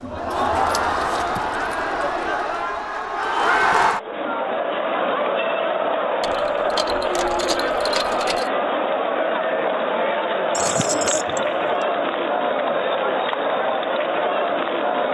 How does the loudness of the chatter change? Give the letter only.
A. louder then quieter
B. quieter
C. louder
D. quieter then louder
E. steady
E.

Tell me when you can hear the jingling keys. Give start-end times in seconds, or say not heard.
0.3-1.9, 6.2-8.5, 10.5-11.8.